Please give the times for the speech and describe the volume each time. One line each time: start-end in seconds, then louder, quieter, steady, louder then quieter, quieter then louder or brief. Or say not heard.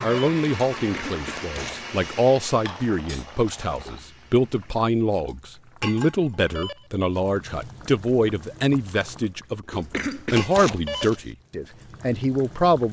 0.0-12.8 steady.